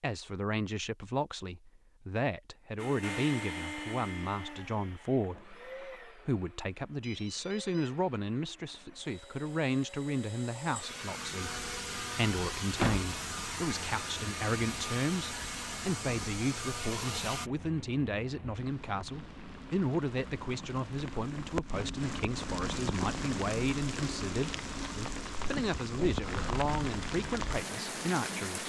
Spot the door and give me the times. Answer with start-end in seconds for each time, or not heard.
12.8-13.2.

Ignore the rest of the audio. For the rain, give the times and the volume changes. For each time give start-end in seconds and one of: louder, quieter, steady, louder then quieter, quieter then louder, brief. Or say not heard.
11.4-28.6 louder.